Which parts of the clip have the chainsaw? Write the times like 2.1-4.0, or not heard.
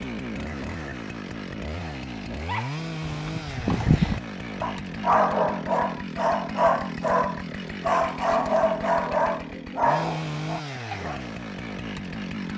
0.0-12.5.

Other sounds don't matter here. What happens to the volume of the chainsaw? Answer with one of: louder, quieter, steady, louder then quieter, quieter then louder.
steady.